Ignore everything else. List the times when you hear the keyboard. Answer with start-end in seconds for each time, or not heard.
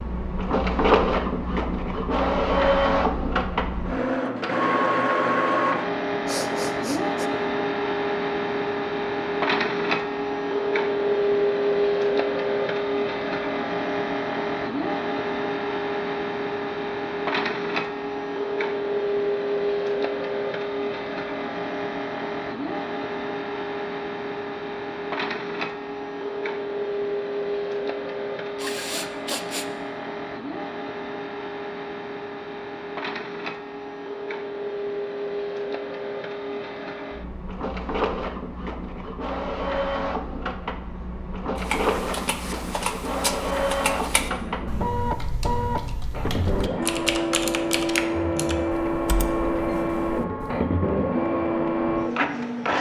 41.5-50.6.